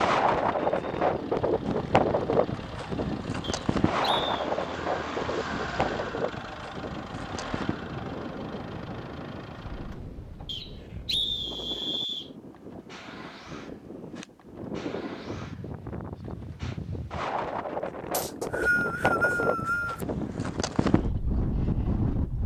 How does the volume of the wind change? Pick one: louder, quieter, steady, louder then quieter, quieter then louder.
quieter then louder.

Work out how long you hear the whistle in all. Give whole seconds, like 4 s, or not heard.
5 s.